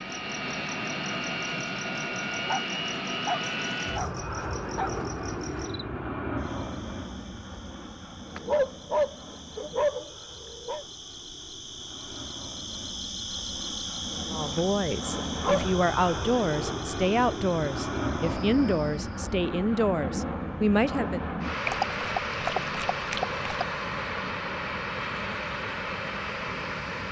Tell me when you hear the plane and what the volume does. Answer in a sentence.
The plane can be heard from 0.0 to 27.0 s, getting quieter then louder.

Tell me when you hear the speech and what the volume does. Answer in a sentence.
You can hear the speech from 14.3 to 21.2 s, at a steady volume.